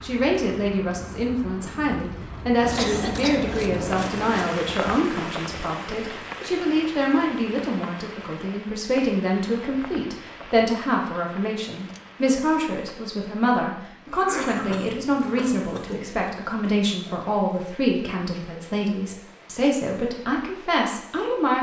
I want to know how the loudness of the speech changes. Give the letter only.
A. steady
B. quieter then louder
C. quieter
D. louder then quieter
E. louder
A.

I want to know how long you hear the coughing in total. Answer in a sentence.
The coughing can be heard for 3 seconds in total.